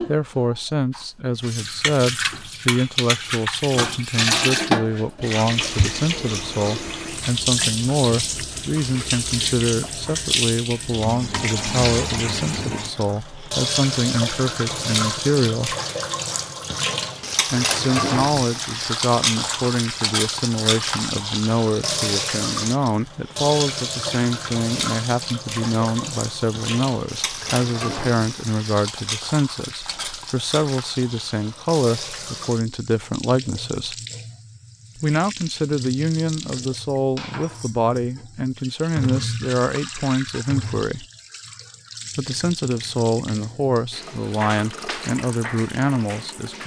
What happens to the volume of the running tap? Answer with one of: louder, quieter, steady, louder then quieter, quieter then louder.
quieter.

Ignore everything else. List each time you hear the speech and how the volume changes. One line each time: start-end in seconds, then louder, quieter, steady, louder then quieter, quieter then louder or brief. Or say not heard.
0.0-15.8 steady
17.5-34.0 steady
35.0-41.0 steady
42.1-46.6 steady.